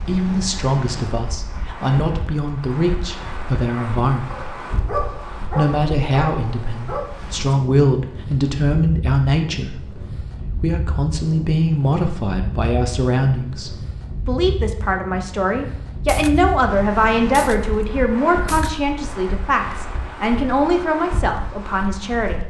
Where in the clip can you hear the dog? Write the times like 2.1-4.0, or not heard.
3.7-7.0.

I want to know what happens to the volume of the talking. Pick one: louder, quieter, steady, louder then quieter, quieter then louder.
steady.